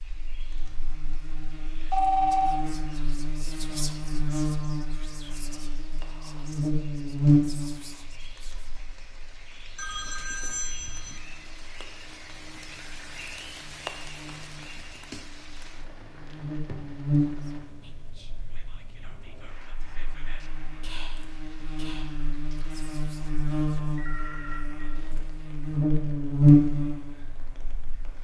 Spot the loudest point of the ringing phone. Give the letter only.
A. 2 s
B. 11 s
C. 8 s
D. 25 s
A.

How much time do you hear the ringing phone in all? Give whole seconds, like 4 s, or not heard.
3 s.